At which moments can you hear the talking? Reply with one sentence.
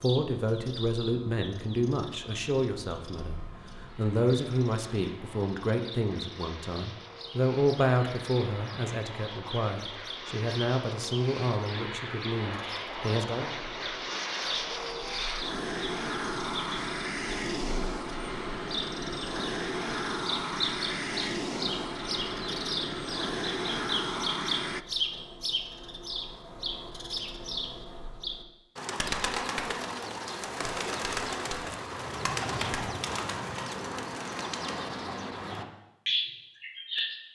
You can hear the talking from 0.0 to 13.5 s.